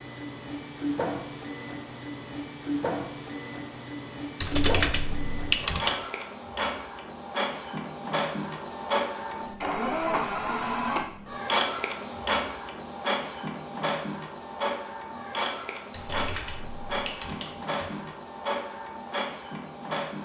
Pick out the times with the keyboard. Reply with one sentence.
You can hear the keyboard from 4.4 to 6.0 s and from 15.9 to 18.1 s.